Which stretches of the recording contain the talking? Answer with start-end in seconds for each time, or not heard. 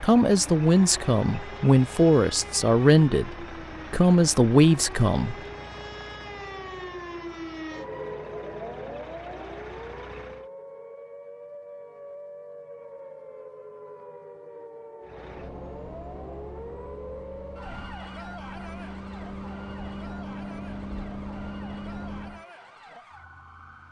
0.0-5.3.